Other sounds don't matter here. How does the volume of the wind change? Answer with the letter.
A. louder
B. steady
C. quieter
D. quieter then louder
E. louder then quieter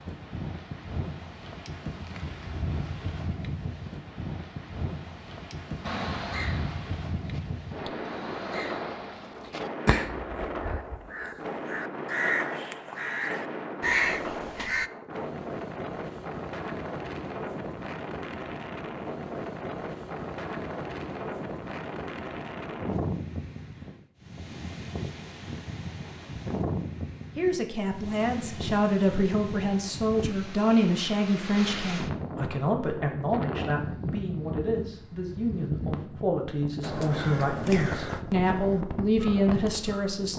B.